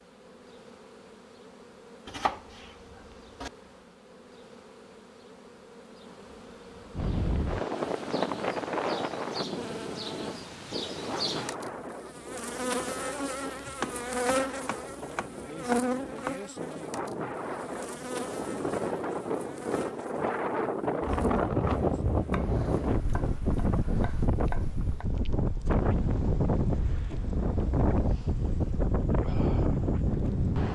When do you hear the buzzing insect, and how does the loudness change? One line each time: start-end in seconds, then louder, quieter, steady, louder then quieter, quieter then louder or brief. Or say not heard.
0.0-30.7 louder then quieter.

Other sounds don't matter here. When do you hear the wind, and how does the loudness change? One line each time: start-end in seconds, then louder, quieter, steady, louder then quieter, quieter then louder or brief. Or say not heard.
6.9-30.7 quieter then louder.